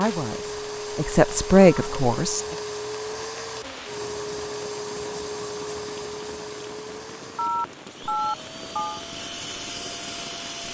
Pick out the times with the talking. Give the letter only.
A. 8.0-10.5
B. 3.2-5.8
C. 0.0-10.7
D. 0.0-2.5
D.